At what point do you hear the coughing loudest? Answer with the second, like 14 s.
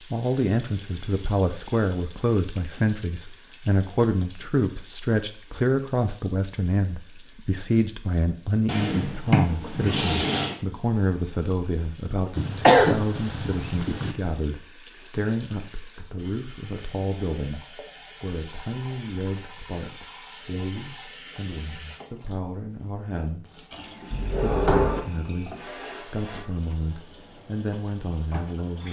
13 s.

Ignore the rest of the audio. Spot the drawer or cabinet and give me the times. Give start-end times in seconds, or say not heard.
8.7-10.6, 24.1-25.0.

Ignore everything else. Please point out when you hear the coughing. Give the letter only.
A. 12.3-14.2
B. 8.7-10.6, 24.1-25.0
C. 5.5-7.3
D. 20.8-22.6
A.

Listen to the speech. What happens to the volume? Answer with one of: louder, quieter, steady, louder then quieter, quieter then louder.
quieter.